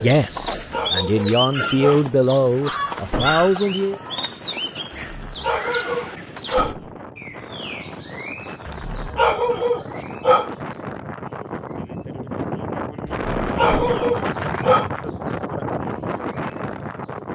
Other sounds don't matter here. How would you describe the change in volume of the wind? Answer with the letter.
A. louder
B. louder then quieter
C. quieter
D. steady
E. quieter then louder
A.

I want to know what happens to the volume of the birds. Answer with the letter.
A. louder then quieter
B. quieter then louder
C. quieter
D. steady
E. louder
C.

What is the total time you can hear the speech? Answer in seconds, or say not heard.
4 s.